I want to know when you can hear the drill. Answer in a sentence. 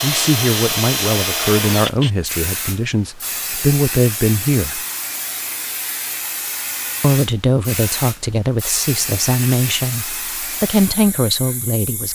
You can hear the drill from 0.0 to 2.1 s.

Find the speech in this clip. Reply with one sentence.
The speech can be heard from 0.0 to 4.8 s and from 7.0 to 12.1 s.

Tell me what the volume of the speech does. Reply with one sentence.
The loudness of the speech stays about the same.